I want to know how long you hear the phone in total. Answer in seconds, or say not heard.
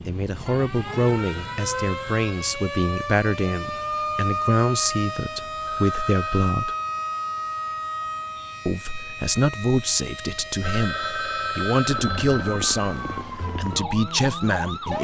5 s.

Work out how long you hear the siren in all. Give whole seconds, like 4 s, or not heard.
15 s.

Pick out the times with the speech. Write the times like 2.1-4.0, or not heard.
0.1-6.8, 8.7-14.9.